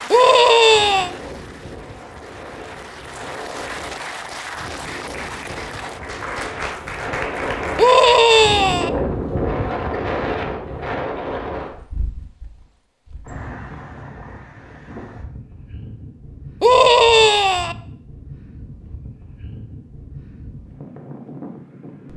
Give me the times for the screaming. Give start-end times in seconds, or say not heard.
0.1-1.1, 7.8-8.9, 16.6-17.8.